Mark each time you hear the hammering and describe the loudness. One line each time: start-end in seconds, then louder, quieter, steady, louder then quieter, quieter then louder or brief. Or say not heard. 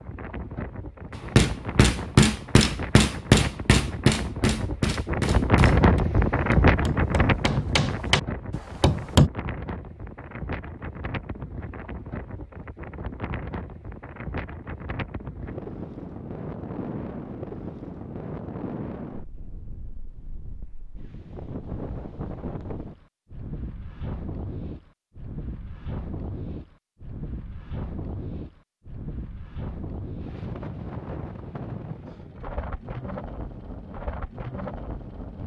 1.1-9.3 quieter then louder.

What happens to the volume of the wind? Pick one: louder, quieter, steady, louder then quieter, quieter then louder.
quieter.